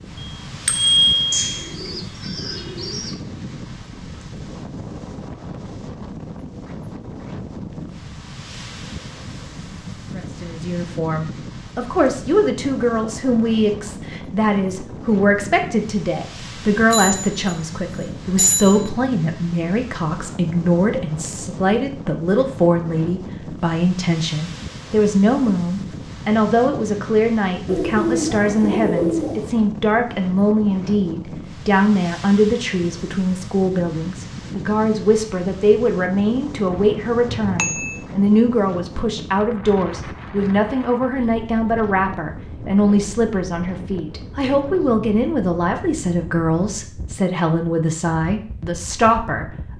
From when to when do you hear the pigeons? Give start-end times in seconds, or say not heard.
1.3-3.1, 27.6-29.5.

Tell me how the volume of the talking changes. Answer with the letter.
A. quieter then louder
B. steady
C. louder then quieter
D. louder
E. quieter
B.